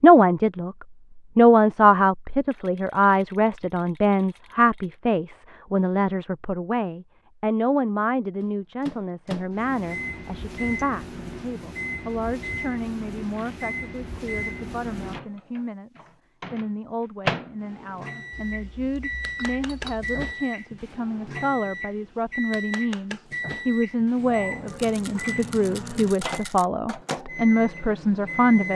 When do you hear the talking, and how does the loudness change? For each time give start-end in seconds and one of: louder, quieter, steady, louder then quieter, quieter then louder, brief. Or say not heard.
0.0-28.7 quieter then louder.